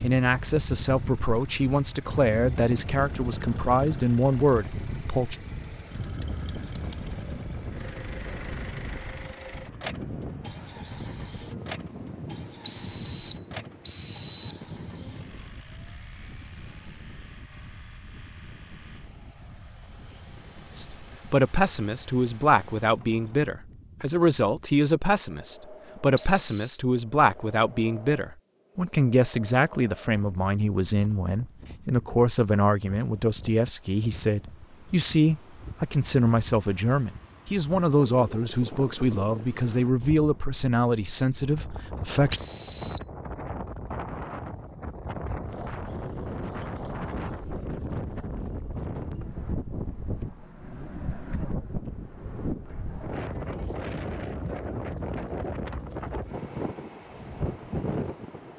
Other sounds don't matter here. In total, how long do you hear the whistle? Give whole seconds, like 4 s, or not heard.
3 s.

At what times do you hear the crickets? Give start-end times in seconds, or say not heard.
not heard.